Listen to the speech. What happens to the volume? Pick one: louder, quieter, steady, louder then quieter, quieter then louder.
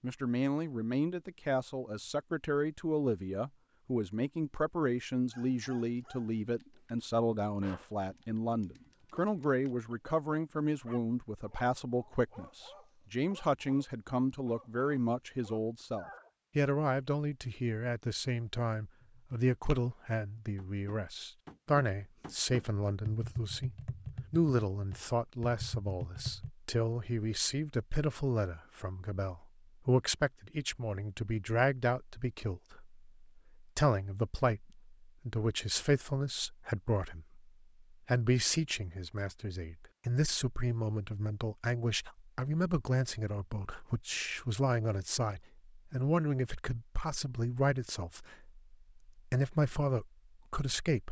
steady.